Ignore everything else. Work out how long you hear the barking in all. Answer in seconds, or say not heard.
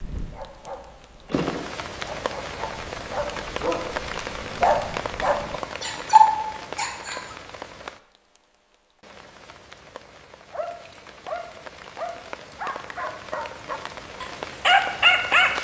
12 s.